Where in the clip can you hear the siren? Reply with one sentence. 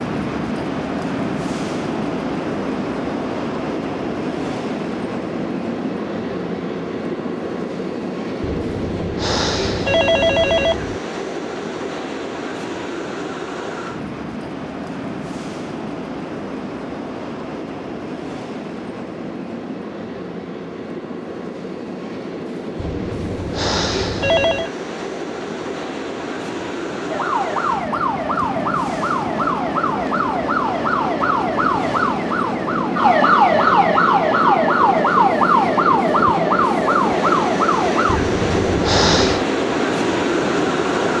You can hear the siren from 27.1 to 38.2 s.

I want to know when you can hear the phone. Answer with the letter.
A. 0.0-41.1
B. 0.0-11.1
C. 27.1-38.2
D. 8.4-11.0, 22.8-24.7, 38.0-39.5
D.